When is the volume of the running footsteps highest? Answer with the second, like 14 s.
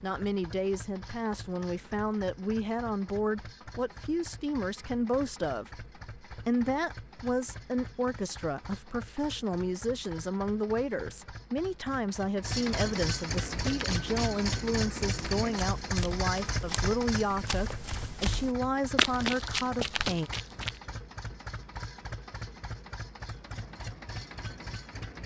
19 s.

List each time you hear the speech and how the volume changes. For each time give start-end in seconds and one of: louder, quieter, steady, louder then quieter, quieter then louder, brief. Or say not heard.
0.0-20.3 steady.